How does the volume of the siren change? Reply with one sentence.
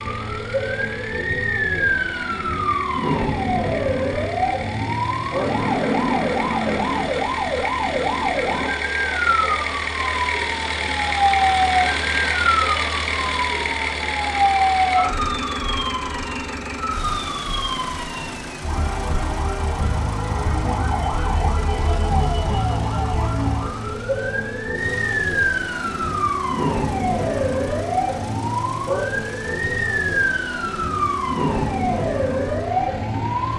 The volume of the siren stays about the same.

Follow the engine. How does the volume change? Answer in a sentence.
The volume of the engine goes up, then down.